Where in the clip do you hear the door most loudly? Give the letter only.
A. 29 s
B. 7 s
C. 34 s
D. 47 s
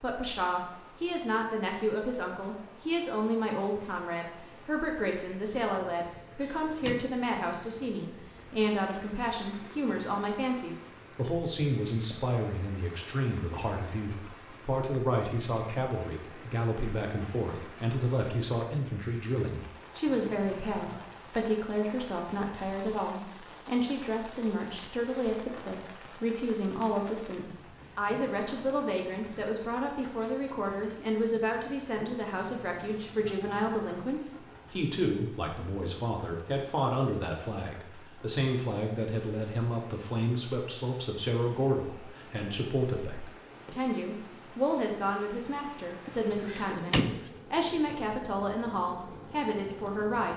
D.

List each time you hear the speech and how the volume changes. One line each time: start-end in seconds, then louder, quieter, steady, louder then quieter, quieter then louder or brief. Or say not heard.
0.0-50.3 steady.